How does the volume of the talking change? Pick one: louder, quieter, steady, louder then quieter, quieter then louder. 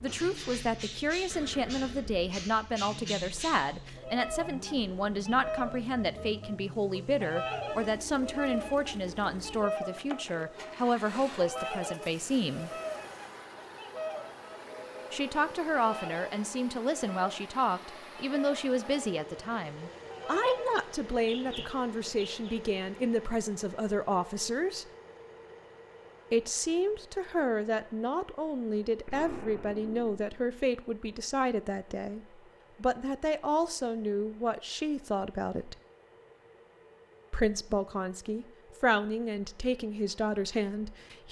steady.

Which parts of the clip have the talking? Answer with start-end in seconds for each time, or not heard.
0.0-12.7, 15.1-24.9, 26.3-35.8, 37.3-41.2.